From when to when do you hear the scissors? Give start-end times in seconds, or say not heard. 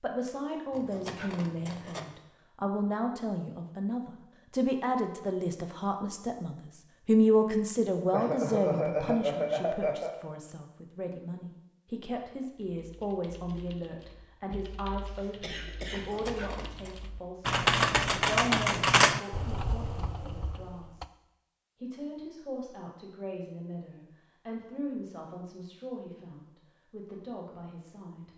0.7-2.1, 15.9-17.0.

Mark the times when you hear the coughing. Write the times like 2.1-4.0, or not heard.
8.1-10.2, 15.1-16.1.